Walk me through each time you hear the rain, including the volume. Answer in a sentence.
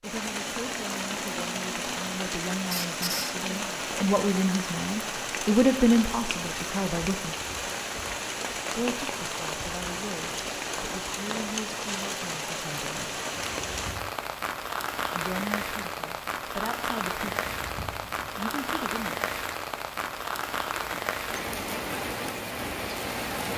The rain can be heard from 0.0 to 23.5 s, at a steady volume.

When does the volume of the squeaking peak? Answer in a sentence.
The volume of the squeaking peaks at 3 seconds.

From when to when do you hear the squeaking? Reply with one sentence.
You can hear the squeaking from 2.7 to 3.4 s, from 13.4 to 14.1 s and from 17.3 to 18.3 s.